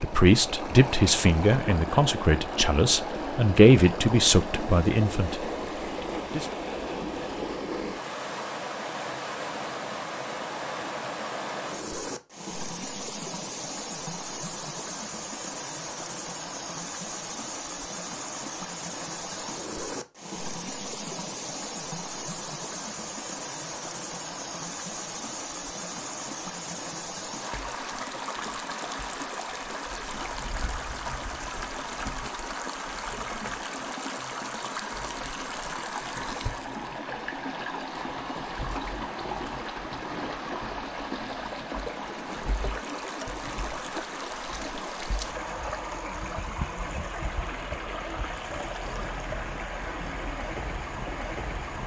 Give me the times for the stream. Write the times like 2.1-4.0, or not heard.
0.0-51.8.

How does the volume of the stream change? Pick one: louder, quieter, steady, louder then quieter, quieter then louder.
steady.